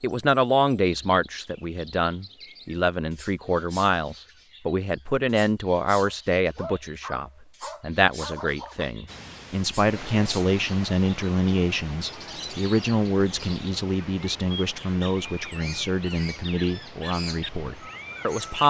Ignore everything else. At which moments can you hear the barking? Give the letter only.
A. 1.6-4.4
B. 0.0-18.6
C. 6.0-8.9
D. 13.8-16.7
C.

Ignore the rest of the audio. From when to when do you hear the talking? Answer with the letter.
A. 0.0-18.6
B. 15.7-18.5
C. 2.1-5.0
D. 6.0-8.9
A.